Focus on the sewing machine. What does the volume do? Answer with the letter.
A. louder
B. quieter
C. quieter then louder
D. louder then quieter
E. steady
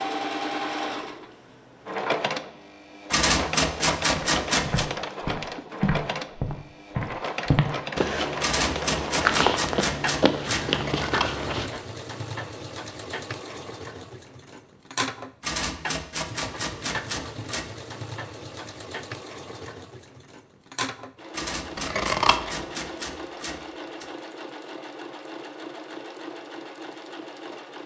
B.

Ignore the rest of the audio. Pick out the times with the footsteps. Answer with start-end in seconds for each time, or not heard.
4.2-11.7.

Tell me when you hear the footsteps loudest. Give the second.
9 s.